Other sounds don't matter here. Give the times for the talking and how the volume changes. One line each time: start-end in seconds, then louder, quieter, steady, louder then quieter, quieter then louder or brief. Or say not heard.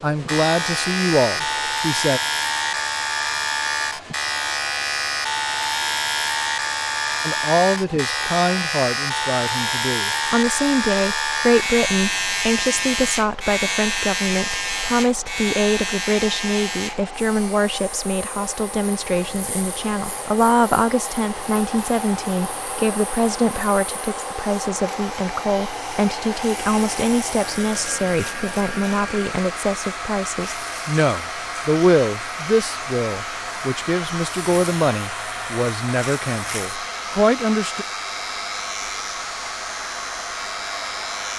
0.0-2.2 brief
7.2-37.9 steady.